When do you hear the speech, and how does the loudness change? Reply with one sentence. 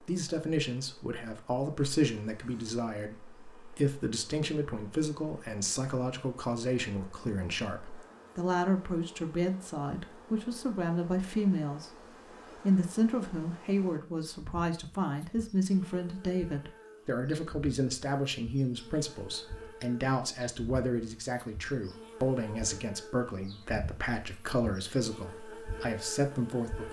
You can hear the speech from 0.0 to 11.9 s, at a steady volume; and from 12.6 to 26.8 s, at a steady volume.